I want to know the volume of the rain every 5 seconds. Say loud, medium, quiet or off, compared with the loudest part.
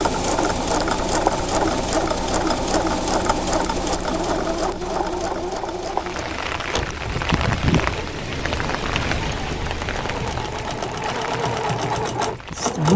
off, loud, medium.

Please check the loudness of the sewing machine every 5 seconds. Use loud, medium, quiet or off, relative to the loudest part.
loud, medium, loud.